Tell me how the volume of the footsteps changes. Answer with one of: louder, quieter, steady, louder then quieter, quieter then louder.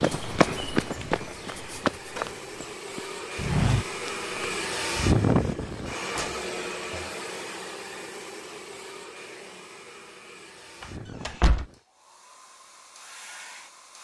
quieter then louder.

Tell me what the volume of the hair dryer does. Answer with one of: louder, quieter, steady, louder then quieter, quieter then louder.
louder then quieter.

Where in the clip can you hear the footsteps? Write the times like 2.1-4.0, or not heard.
0.0-4.5.